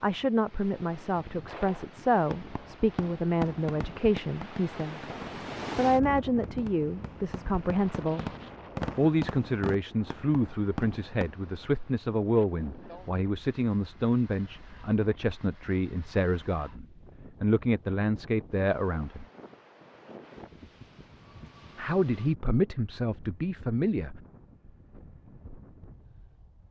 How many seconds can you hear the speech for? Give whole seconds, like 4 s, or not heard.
20 s.